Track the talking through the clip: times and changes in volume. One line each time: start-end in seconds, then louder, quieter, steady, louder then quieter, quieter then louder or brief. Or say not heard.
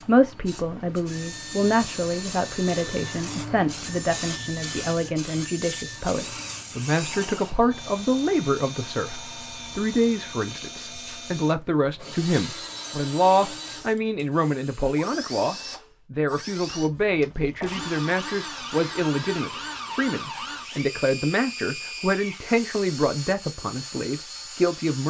0.0-25.0 steady.